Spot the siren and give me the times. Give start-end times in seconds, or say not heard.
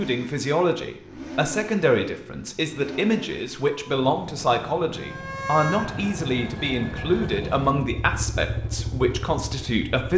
4.9-7.3.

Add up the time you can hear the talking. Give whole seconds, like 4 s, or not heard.
10 s.